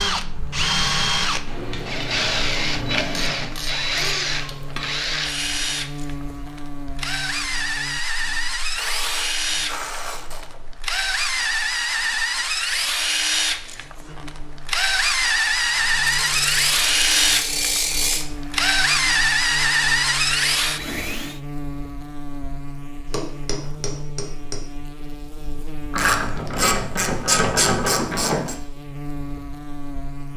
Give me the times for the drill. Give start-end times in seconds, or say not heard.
0.0-21.4.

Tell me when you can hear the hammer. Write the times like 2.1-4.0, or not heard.
1.4-3.5, 23.1-24.6.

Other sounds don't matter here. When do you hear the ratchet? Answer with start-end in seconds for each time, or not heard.
3.1-4.9, 8.8-10.6, 16.1-18.2, 25.9-28.6.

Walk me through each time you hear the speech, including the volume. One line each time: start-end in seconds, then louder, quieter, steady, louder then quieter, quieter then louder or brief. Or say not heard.
not heard.